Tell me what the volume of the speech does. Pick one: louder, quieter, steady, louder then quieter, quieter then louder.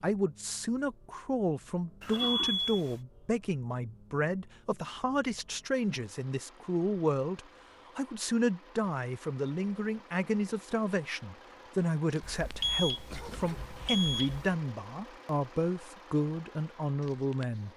steady.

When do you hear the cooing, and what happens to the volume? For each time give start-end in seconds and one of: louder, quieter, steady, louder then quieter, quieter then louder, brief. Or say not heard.
not heard.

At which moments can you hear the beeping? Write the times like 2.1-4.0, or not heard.
2.0-3.0, 12.2-14.6.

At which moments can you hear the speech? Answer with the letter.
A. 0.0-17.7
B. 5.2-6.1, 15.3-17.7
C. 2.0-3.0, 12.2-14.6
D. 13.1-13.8
A.